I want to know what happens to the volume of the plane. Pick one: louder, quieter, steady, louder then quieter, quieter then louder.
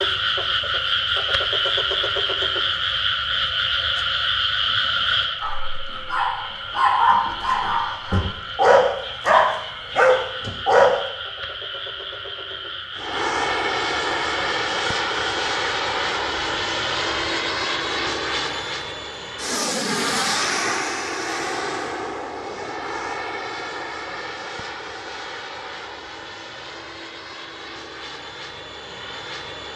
quieter.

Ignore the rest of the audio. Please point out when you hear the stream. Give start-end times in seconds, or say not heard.
not heard.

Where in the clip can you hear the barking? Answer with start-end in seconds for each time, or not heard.
5.4-10.9.